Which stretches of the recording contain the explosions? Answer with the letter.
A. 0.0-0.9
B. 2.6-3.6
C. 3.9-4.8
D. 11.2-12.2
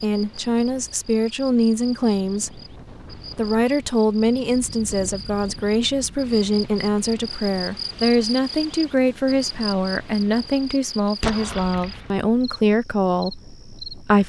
D.